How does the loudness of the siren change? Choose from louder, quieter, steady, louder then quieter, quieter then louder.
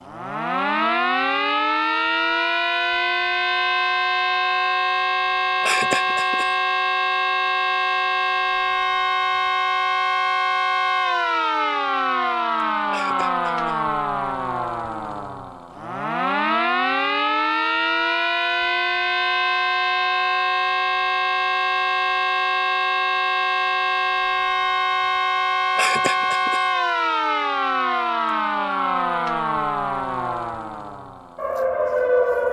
steady.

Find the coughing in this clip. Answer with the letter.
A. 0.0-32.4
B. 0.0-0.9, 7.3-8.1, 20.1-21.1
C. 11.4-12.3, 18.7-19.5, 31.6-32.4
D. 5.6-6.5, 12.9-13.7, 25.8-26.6
D.